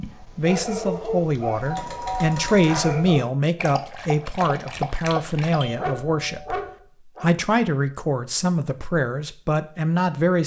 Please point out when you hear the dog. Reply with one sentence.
The dog can be heard from 0.0 to 7.3 s.